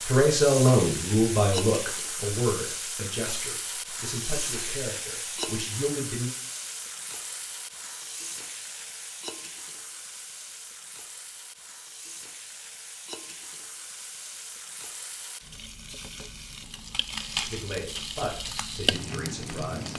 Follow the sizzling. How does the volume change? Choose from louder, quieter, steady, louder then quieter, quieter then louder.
quieter then louder.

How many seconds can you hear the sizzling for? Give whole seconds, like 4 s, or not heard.
20 s.